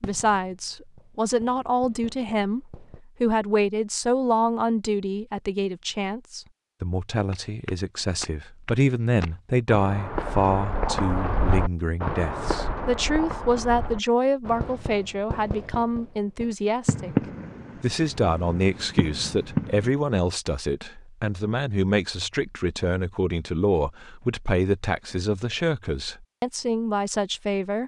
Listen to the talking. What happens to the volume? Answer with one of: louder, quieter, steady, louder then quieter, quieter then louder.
steady.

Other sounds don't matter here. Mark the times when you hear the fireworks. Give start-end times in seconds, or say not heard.
0.0-3.0, 14.4-19.9.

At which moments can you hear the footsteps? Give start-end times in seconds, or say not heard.
7.3-14.8.